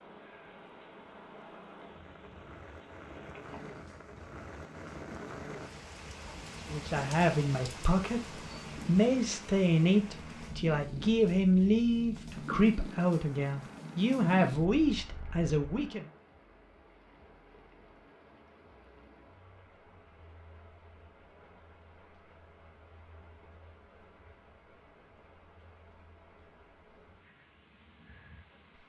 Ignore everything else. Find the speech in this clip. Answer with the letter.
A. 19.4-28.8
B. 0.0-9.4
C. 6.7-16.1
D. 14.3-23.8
C.